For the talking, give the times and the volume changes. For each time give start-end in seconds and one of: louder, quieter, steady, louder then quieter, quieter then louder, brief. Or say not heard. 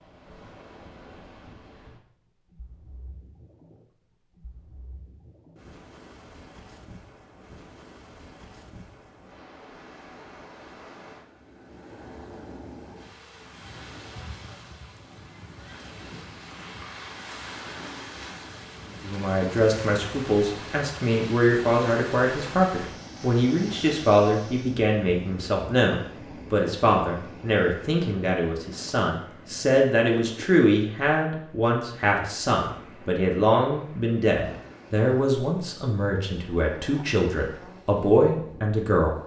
19.0-39.2 steady.